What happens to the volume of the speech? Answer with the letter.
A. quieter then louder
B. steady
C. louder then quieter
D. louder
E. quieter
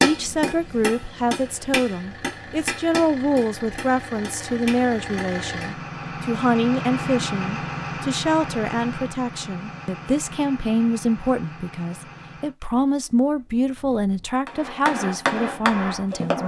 B.